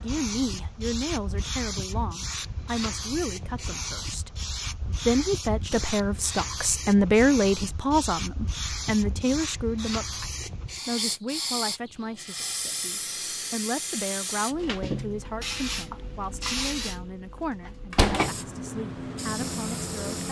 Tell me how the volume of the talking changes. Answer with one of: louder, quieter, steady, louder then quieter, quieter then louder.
louder then quieter.